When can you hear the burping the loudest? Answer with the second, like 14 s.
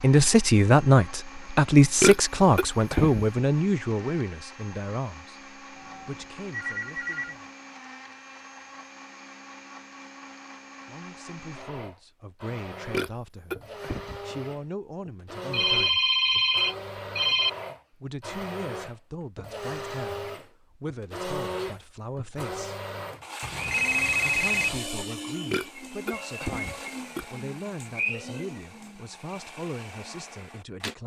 2 s.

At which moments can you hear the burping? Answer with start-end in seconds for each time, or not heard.
1.8-3.2, 12.9-14.3, 25.5-27.2.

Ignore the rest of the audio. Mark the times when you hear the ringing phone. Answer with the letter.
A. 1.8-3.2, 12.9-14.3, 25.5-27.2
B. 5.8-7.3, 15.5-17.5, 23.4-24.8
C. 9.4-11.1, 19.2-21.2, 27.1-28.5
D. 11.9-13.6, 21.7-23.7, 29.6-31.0
B.